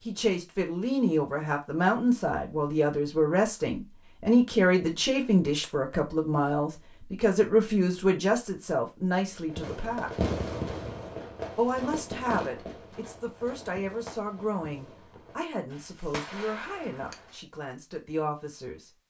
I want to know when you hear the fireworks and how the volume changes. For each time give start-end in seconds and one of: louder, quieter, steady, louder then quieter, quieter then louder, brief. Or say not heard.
9.4-17.4 quieter then louder.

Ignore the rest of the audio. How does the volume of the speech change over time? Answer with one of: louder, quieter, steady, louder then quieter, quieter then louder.
quieter.